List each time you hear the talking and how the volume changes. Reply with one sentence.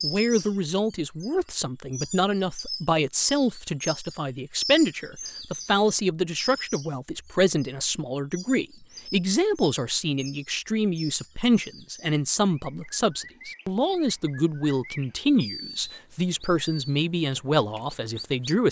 The talking can be heard from 0.0 to 18.6 s, at a steady volume.